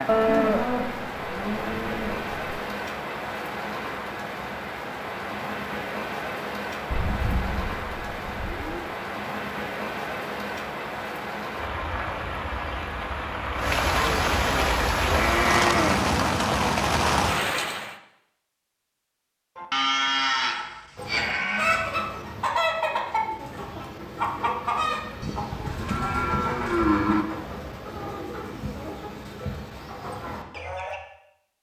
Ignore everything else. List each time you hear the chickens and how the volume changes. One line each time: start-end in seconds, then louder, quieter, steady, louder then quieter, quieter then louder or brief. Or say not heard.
20.9-31.0 quieter.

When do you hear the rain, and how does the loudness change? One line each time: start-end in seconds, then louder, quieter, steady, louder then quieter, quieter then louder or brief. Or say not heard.
0.0-17.9 louder.